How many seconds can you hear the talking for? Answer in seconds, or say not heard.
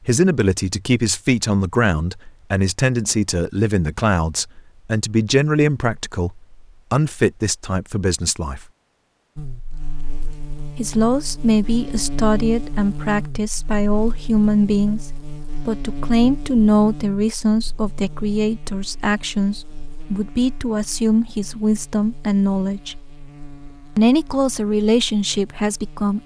23 s.